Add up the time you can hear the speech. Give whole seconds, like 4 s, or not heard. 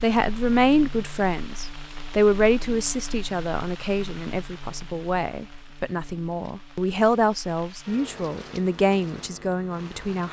10 s.